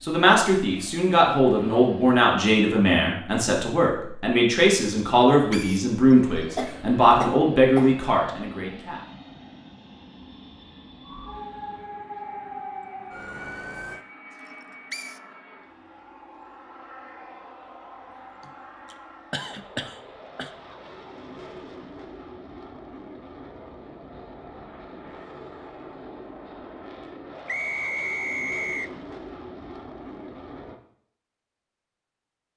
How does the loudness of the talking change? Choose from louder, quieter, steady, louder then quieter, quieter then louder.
steady.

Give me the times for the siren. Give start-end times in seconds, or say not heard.
11.0-14.1.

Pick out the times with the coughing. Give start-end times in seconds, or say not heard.
6.5-8.0, 18.4-20.5.